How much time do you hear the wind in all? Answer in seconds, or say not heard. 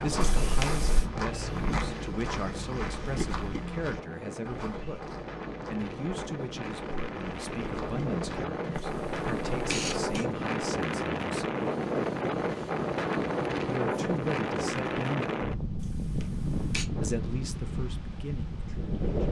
19 s.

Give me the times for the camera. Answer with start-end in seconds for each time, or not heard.
0.2-1.1, 8.8-10.2, 15.8-16.9.